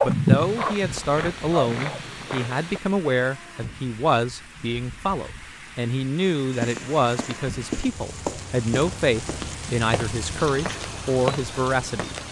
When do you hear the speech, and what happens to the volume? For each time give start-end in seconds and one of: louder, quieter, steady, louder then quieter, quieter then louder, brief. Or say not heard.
0.0-12.2 steady.